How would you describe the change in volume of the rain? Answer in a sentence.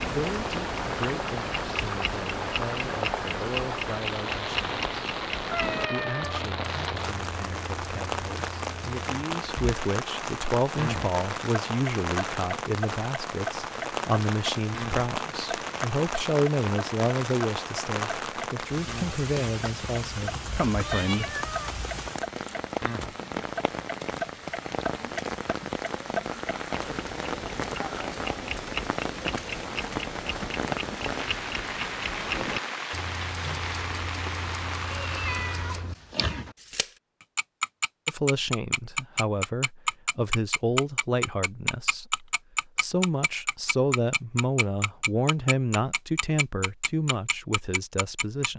The loudness of the rain stays about the same.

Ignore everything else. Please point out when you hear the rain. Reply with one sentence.
The rain can be heard from 0.0 to 35.9 s.